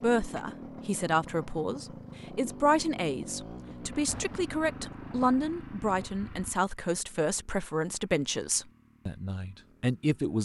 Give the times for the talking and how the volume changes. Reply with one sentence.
You can hear the talking from 0.0 to 10.4 s, at a steady volume.